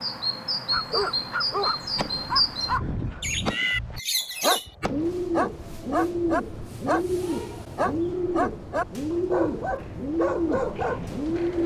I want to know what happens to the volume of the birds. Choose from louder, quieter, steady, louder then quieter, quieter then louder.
steady.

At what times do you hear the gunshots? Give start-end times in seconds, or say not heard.
1.9-5.1.